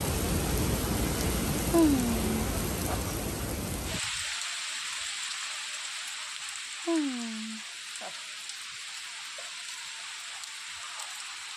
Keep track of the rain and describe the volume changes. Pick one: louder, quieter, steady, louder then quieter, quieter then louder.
quieter.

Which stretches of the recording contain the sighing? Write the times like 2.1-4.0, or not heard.
1.7-3.0, 6.8-8.1.